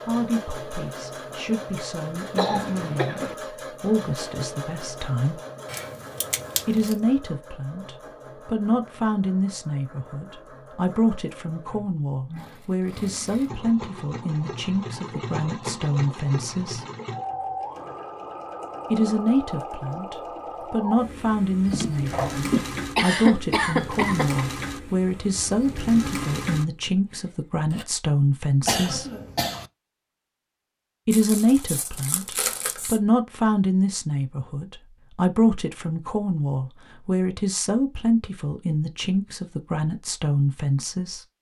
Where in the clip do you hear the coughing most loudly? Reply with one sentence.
The volume of the coughing peaks at 23 seconds.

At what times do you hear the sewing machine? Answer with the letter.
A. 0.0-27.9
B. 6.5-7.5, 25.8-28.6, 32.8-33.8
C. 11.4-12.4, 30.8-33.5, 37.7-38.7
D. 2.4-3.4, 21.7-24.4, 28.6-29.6
A.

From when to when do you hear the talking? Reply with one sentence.
The talking can be heard from 0.0 to 5.4 s, from 6.7 to 16.9 s, from 18.9 to 29.1 s and from 31.1 to 41.2 s.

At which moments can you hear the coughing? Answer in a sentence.
You can hear the coughing from 2.4 to 3.4 s, from 21.7 to 24.4 s and from 28.6 to 29.6 s.